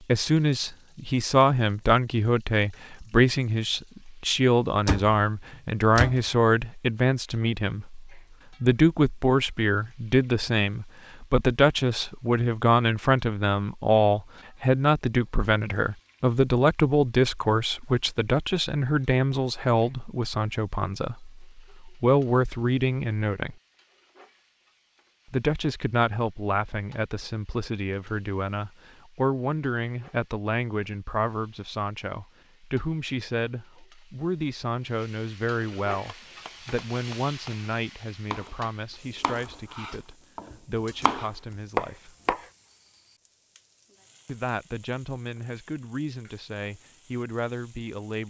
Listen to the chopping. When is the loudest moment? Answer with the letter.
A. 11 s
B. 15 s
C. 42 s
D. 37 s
C.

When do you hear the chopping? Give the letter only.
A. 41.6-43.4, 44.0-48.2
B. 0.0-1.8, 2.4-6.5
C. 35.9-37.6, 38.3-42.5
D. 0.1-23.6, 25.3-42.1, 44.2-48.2
C.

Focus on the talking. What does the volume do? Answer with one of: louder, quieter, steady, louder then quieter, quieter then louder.
quieter.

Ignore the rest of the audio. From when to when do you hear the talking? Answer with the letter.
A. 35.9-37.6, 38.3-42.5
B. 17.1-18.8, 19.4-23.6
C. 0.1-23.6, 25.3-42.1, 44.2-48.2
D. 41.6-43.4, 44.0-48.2
C.